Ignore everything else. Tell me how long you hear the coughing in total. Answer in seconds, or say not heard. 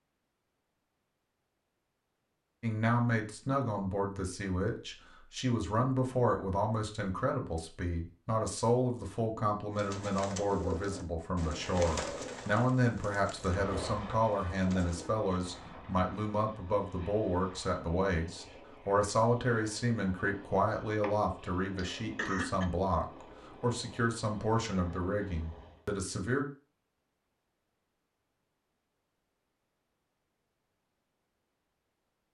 2 s.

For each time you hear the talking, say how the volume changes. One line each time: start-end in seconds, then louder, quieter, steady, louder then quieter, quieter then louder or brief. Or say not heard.
2.6-26.4 steady.